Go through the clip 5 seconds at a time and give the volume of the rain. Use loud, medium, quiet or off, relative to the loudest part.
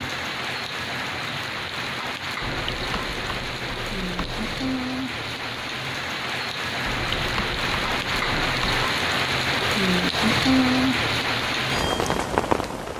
medium, loud, loud.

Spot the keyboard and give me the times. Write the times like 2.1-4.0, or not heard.
2.4-4.9, 6.8-8.8.